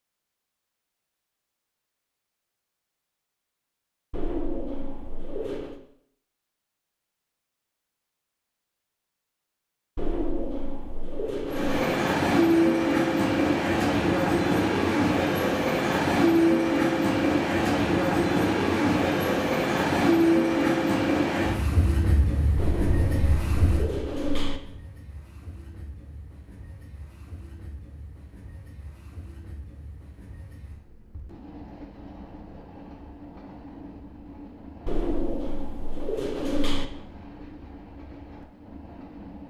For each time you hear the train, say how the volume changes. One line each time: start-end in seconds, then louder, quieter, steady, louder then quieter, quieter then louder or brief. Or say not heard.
11.4-39.4 quieter.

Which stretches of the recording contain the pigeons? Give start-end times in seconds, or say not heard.
4.1-5.8, 9.9-11.8, 22.6-24.6, 34.9-36.9.